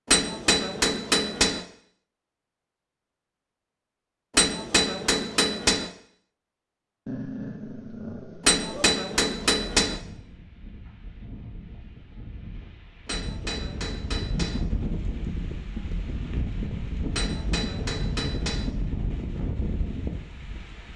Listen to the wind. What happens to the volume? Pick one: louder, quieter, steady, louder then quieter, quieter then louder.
louder.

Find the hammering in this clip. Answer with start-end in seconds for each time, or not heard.
0.1-1.6, 4.3-5.9, 8.4-9.9, 13.1-14.6, 17.1-18.6.